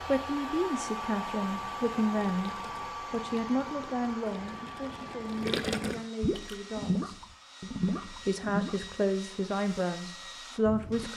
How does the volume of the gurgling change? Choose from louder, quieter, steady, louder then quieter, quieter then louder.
louder.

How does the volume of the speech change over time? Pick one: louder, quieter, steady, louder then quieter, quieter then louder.
quieter then louder.